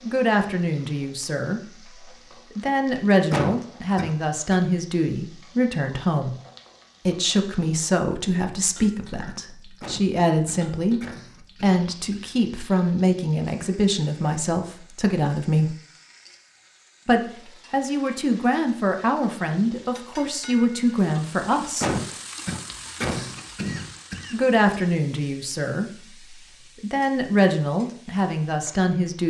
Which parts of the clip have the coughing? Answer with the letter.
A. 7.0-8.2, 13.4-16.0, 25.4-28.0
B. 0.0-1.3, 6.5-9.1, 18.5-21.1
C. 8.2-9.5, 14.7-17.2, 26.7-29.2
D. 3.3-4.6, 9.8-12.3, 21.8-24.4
D.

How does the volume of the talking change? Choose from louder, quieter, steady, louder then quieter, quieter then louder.
steady.